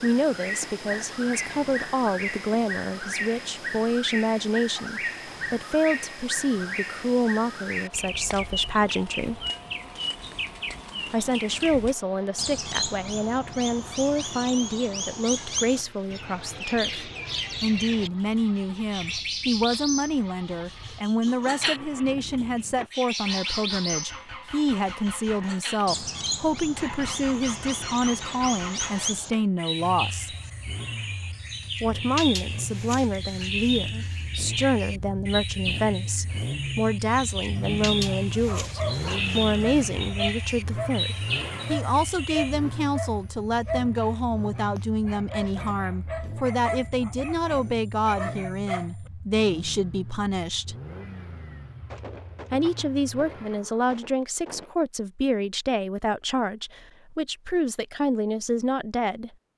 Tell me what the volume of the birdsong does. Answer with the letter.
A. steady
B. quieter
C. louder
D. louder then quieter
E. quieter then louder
A.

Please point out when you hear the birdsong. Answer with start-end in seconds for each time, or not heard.
0.0-42.5.